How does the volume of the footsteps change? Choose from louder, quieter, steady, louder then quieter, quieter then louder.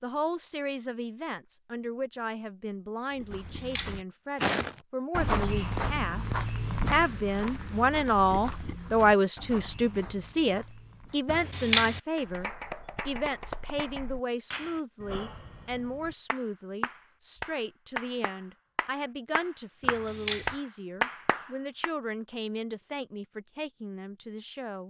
quieter.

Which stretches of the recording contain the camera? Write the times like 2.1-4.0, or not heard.
3.3-4.0, 11.2-12.0, 19.8-20.6.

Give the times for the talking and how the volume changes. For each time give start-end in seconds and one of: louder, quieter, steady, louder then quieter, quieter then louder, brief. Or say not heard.
0.0-24.8 louder then quieter.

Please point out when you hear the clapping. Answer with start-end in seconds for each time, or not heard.
12.2-21.9.